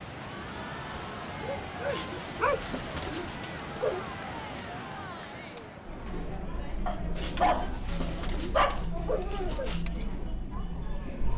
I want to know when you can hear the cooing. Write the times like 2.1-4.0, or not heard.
1.9-4.0, 7.2-9.8.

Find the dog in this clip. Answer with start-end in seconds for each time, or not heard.
1.4-2.8, 6.8-8.8.